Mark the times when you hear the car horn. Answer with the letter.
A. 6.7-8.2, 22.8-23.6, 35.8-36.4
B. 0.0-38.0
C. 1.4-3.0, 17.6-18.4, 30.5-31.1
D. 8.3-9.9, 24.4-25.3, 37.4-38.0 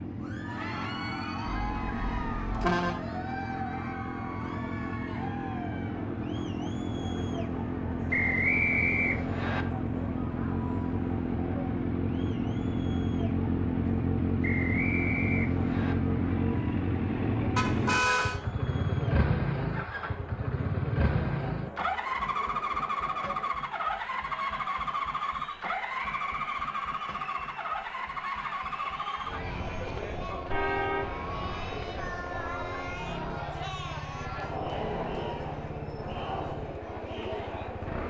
C.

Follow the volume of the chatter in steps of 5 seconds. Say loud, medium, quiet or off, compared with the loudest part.
loud, medium, medium, medium, medium, medium, loud, loud.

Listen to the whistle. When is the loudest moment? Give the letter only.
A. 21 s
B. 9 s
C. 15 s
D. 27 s
B.